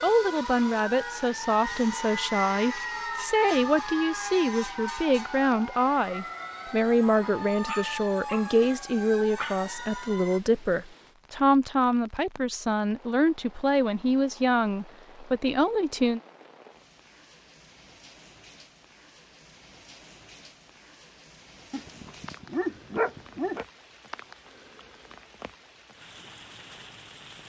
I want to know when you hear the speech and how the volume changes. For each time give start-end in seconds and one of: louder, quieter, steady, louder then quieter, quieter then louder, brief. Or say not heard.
0.0-16.2 steady.